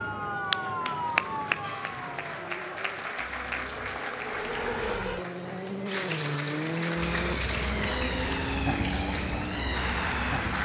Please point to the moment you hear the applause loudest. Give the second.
1 s.